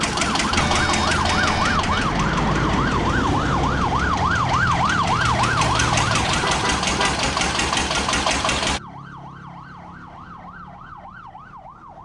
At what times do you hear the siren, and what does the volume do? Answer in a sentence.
The siren can be heard from 0.0 to 12.0 s, getting quieter.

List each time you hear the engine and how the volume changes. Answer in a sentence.
The engine can be heard from 0.0 to 8.8 s, getting quieter then louder.